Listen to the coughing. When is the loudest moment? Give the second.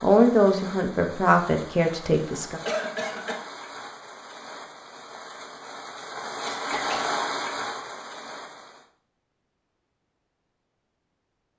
3 s.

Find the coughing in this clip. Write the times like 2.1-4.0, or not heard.
2.6-3.4, 6.5-7.1.